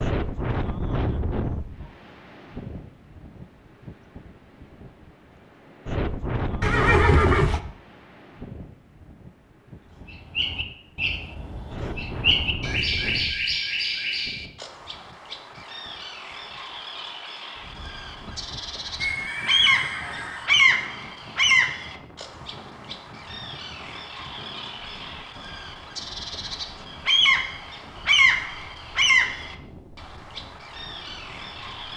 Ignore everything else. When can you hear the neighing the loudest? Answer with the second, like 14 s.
7 s.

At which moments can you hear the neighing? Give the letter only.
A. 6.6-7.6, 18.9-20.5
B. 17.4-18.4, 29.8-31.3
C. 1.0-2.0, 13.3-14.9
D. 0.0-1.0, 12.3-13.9
A.